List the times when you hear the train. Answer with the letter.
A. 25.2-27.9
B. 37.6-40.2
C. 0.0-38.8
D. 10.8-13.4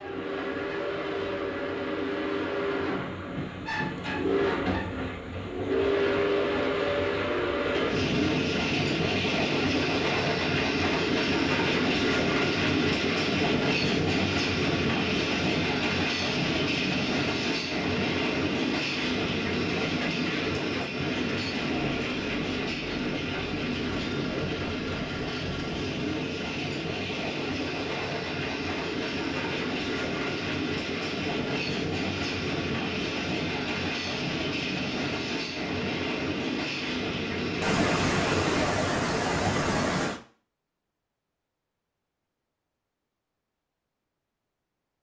C.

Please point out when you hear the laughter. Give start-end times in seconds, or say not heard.
37.6-40.2.